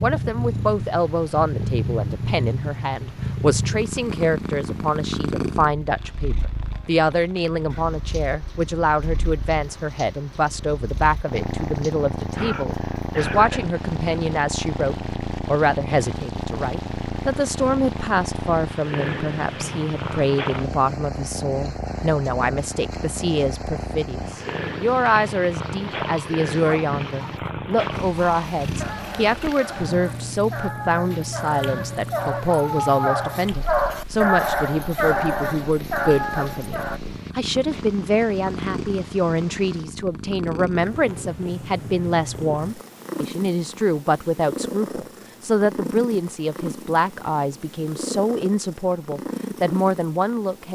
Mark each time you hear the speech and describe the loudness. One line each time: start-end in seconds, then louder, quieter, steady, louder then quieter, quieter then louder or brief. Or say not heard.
0.0-50.6 steady.